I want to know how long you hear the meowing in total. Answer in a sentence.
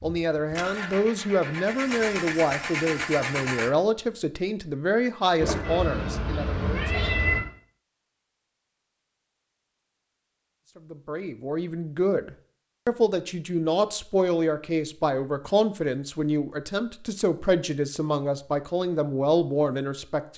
The meowing can be heard for 2 seconds in total.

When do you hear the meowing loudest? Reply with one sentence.
The volume of the meowing peaks at 7 seconds.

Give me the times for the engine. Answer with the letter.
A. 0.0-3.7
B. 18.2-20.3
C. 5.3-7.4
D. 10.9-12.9
A.